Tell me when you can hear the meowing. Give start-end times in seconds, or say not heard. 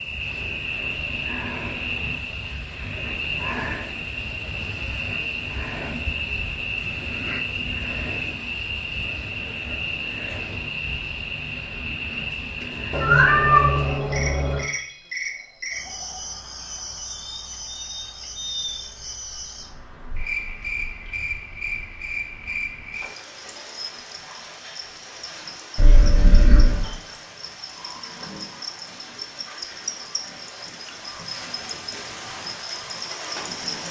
12.9-14.7, 25.8-26.9.